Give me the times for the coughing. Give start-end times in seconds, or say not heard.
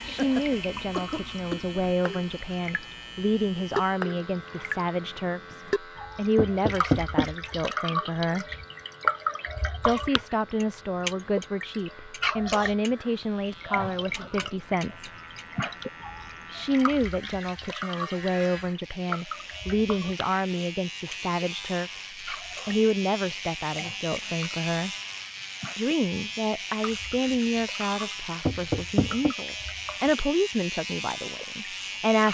0.1-1.8.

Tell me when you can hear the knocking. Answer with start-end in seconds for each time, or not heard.
6.3-7.3, 28.4-29.3.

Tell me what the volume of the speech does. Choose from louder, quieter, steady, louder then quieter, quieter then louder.
steady.